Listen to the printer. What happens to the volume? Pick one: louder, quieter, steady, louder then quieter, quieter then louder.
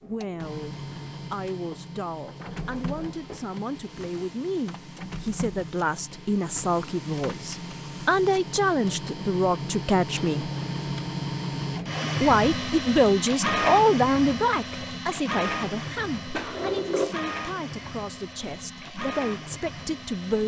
louder then quieter.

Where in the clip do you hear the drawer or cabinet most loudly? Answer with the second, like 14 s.
17 s.